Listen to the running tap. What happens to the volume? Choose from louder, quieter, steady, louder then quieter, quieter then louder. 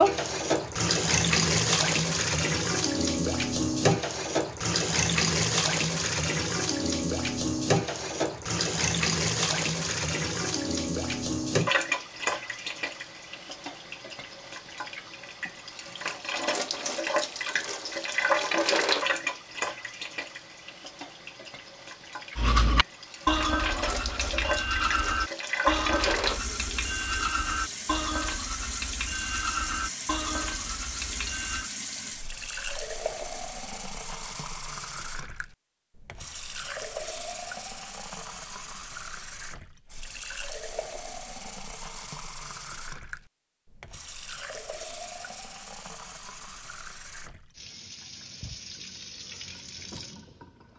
quieter.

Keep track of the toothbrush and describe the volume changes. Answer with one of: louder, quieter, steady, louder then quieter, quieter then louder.
quieter.